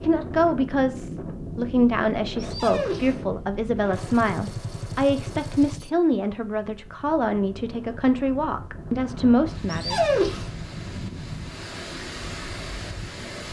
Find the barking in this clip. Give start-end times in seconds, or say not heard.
2.4-3.2, 9.7-10.5.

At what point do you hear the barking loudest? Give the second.
10 s.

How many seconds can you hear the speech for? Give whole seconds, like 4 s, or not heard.
10 s.